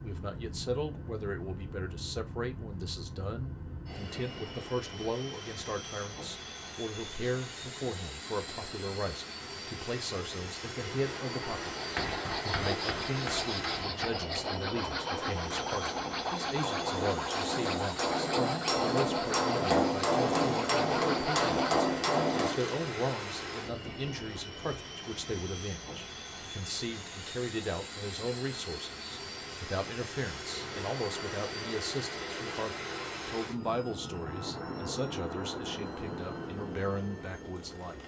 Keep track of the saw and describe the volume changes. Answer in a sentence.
The volume of the saw stays about the same.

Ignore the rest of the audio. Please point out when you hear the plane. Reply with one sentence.
You can hear the plane from 0.0 to 38.0 s.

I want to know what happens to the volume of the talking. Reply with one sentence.
The loudness of the talking stays about the same.